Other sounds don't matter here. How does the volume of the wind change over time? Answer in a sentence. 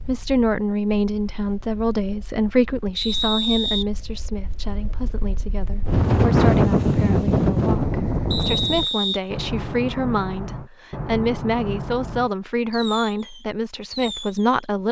The loudness of the wind goes up.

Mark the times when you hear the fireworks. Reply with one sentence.
The fireworks can be heard from 8.8 to 14.7 s.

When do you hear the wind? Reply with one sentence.
The wind can be heard from 0.0 to 8.9 s.